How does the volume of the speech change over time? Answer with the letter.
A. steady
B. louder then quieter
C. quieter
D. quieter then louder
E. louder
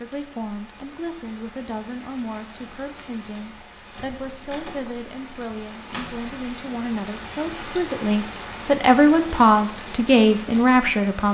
E.